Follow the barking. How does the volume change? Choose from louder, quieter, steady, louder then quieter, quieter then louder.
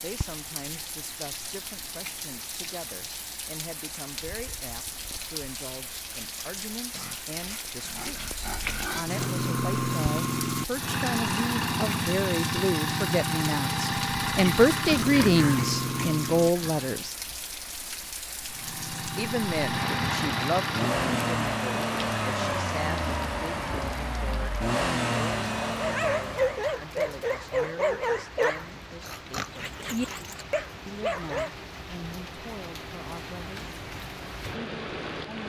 quieter then louder.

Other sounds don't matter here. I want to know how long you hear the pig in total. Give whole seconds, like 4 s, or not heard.
6 s.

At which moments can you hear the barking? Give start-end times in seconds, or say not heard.
25.8-31.5.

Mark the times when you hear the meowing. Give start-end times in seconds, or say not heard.
not heard.